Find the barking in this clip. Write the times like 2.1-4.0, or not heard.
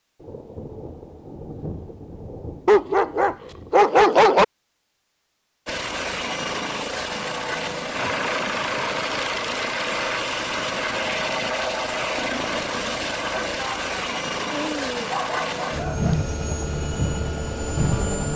2.6-4.5, 13.6-16.2.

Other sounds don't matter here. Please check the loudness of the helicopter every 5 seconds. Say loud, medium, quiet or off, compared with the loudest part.
off, loud, loud, loud.